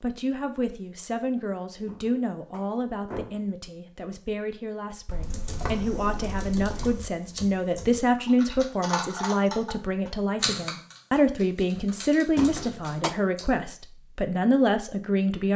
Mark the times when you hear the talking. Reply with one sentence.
You can hear the talking from 0.0 to 15.5 s.